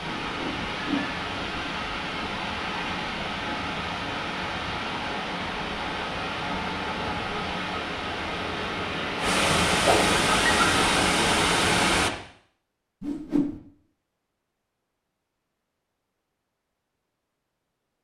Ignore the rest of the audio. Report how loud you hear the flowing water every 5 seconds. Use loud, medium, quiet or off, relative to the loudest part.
medium, medium, loud, off.